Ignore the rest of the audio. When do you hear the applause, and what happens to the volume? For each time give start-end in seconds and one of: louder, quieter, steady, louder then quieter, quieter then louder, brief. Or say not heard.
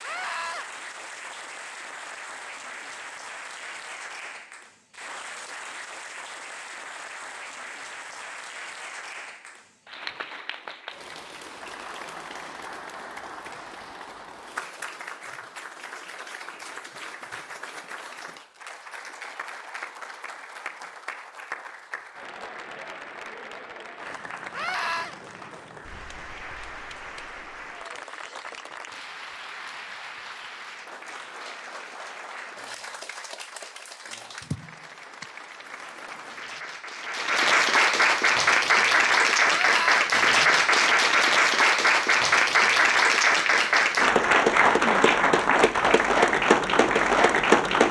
0.0-47.8 louder.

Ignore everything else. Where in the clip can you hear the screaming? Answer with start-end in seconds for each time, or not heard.
0.0-0.7, 24.5-25.1, 39.5-40.1.